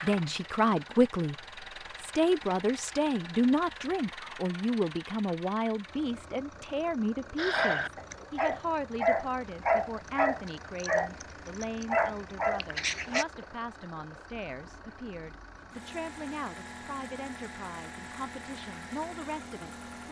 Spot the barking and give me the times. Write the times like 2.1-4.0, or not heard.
7.3-13.2.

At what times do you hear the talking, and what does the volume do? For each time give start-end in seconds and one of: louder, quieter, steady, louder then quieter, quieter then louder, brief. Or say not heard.
0.0-1.4 brief
2.0-20.0 quieter.